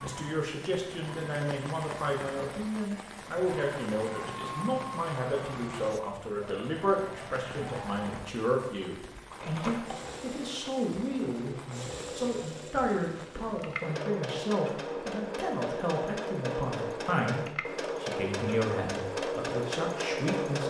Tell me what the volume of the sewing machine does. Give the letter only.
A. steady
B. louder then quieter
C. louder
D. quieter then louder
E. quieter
C.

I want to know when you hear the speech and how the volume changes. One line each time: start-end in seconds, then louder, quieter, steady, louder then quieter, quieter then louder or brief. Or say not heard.
0.0-20.6 steady.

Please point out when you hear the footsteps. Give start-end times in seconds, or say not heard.
not heard.